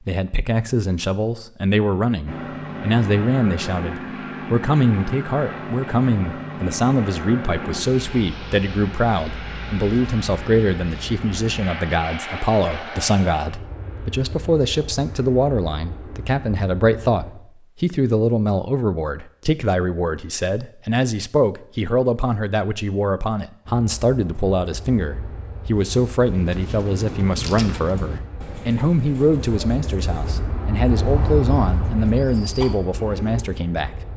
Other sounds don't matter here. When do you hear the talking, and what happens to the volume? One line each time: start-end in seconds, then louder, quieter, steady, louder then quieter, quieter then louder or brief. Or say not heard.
0.0-34.0 steady.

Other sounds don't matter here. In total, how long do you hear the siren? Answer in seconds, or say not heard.
not heard.